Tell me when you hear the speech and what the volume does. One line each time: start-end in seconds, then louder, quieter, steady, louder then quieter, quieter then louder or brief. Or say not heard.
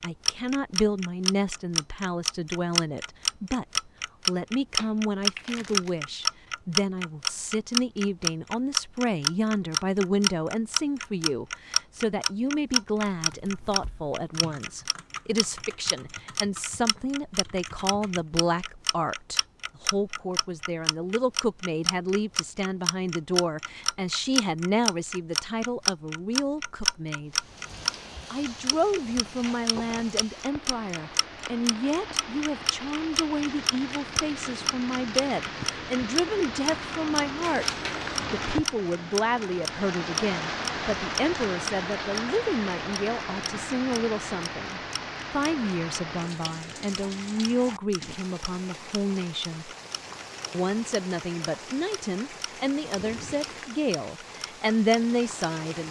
0.0-27.4 steady
28.3-49.7 steady
50.5-55.8 louder.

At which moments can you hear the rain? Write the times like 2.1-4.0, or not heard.
27.2-55.8.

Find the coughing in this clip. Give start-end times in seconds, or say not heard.
not heard.